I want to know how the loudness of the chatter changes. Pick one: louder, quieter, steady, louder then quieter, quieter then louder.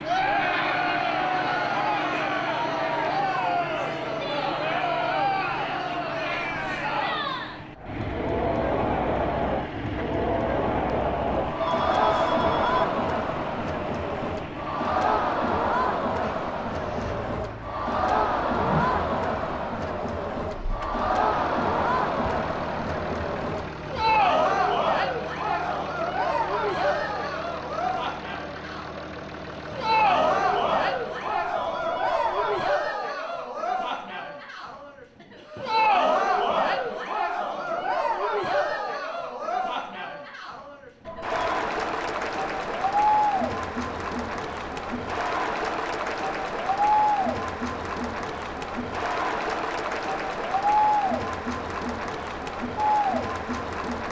steady.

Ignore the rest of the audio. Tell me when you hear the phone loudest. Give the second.
12 s.